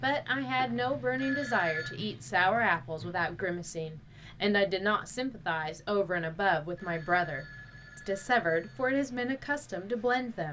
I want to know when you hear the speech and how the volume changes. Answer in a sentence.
The speech can be heard from 0.0 to 10.4 s, at a steady volume.